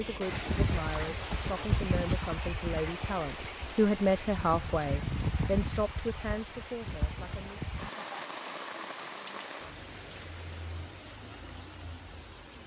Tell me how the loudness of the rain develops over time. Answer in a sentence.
The volume of the rain goes down.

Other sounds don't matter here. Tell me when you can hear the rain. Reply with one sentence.
You can hear the rain from 0.0 to 12.6 s.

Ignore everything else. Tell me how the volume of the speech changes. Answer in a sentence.
The volume of the speech goes up, then down.